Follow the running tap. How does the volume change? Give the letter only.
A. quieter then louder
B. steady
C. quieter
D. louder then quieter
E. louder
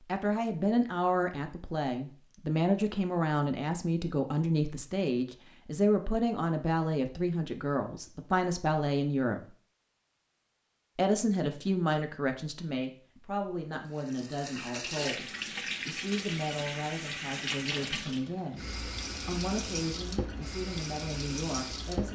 B.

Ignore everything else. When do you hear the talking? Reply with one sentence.
You can hear the talking from 0.1 to 9.4 s and from 10.9 to 22.1 s.